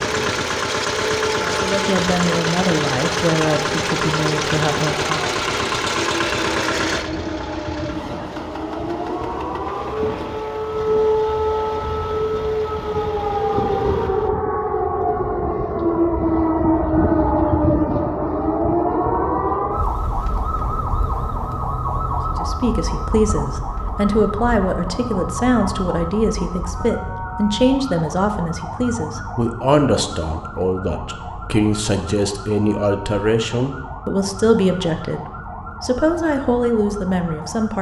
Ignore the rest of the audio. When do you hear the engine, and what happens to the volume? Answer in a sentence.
You can hear the engine from 0.0 to 14.3 s, getting quieter.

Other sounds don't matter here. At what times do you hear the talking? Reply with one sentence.
The talking can be heard from 1.4 to 5.3 s and from 22.2 to 37.7 s.